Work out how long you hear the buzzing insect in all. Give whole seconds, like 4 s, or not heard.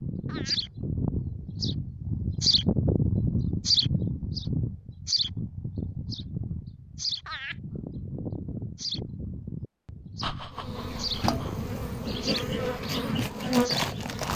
4 s.